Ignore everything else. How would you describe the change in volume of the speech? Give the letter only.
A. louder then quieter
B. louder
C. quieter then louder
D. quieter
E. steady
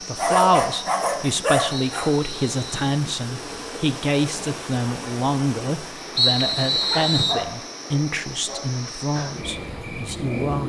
D.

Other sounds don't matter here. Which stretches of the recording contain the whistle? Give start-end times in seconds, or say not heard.
1.7-3.0, 6.2-7.5.